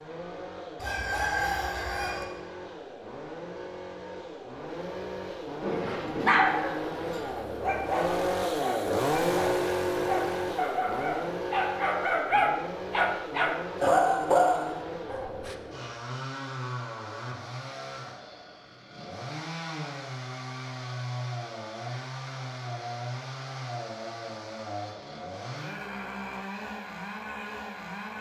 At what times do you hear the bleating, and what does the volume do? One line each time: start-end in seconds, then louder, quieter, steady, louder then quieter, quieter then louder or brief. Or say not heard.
not heard.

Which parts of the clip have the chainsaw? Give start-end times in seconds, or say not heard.
0.0-28.1.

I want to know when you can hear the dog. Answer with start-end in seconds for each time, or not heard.
5.6-15.6.